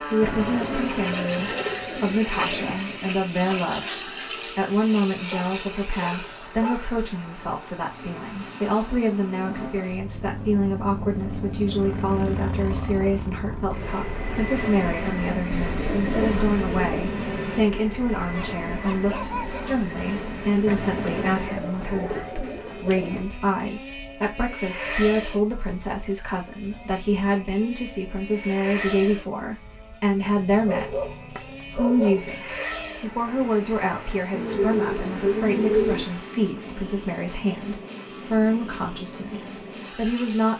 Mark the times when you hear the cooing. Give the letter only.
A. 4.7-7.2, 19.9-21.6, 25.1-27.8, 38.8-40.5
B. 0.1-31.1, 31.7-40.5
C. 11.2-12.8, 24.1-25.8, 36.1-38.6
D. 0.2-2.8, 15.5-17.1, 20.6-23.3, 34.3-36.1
D.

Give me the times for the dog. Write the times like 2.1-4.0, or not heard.
5.3-6.9, 18.1-19.8, 30.2-32.7.